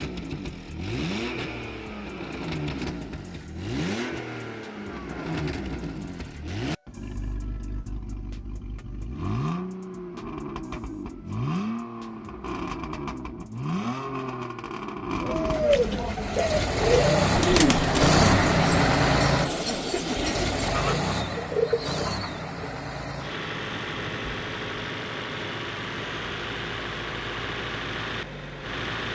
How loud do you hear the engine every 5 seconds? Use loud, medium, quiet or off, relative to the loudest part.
medium, medium, medium, loud, medium, medium.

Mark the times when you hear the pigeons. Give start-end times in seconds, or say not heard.
15.2-22.6.